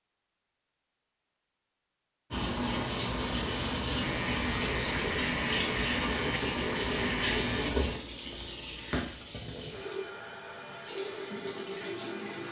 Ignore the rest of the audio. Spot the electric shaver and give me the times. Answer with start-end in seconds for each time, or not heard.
4.0-7.7.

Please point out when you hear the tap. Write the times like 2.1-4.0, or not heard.
2.3-12.4.